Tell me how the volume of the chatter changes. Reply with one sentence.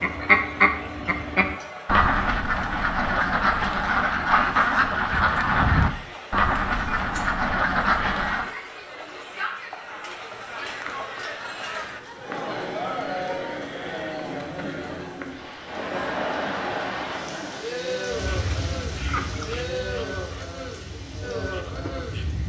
The volume of the chatter goes up.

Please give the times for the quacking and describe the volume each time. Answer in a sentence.
You can hear the quacking from 0.0 to 8.5 s, at a steady volume; and from 18.1 to 22.4 s, getting quieter then louder.